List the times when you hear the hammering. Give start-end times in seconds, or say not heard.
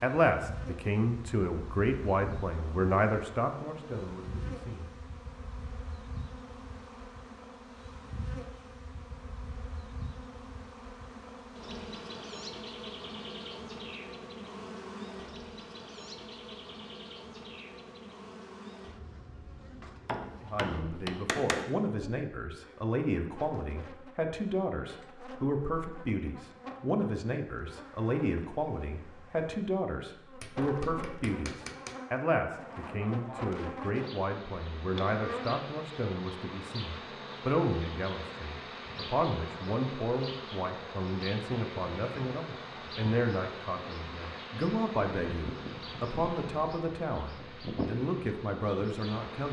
20.1-21.7, 30.4-31.9.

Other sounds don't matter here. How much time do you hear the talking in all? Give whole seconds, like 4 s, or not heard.
34 s.